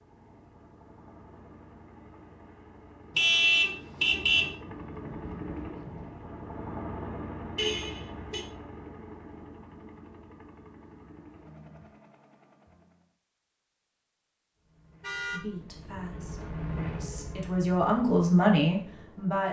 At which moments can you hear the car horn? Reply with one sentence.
You can hear the car horn from 3.1 to 4.5 s, from 7.5 to 8.4 s and from 15.0 to 15.4 s.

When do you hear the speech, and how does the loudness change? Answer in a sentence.
You can hear the speech from 15.2 to 19.4 s, getting quieter then louder.